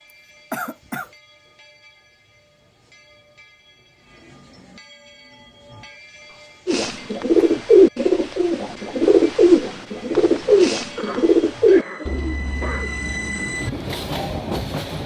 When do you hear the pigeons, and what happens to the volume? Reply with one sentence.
You can hear the pigeons from 6.7 to 14.5 s, getting quieter.